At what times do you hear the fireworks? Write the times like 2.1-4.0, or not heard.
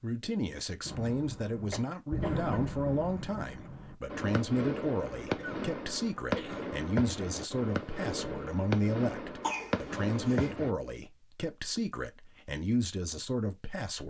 0.8-10.8.